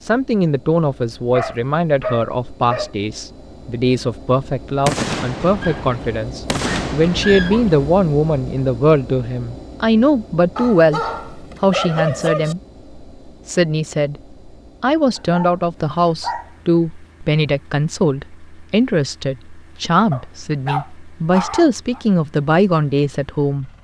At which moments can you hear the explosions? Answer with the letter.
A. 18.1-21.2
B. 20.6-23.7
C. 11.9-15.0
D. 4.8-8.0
D.